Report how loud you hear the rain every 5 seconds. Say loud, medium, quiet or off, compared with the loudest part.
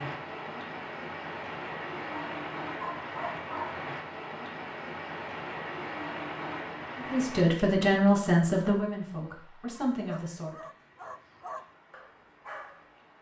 loud, loud, quiet.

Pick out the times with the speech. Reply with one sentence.
The speech can be heard from 7.0 to 10.6 s.